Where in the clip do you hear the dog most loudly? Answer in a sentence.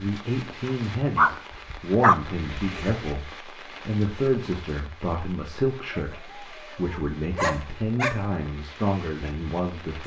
The loudest moment of the dog is at 2 seconds.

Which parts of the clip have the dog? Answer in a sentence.
The dog can be heard from 1.1 to 3.0 s and from 5.9 to 8.2 s.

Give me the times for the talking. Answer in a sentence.
The talking can be heard from 0.0 to 10.0 s.